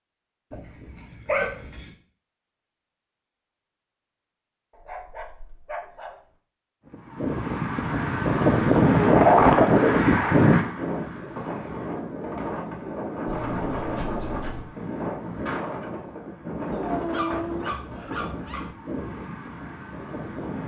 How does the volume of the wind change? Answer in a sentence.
The loudness of the wind goes down.